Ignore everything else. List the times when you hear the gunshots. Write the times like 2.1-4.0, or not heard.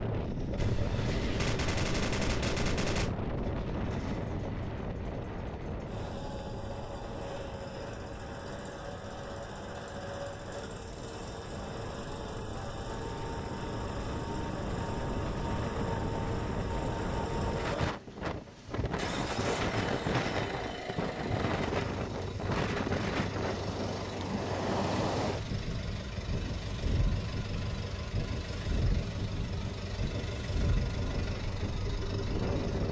0.6-3.1.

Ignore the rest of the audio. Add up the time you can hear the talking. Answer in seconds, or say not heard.
not heard.